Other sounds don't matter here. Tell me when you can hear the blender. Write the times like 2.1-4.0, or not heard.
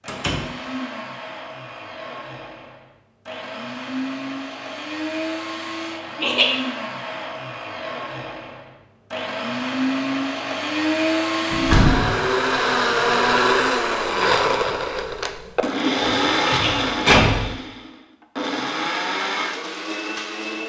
0.0-20.6.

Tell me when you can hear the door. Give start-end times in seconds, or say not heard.
0.1-0.5, 11.5-12.2, 15.9-17.4.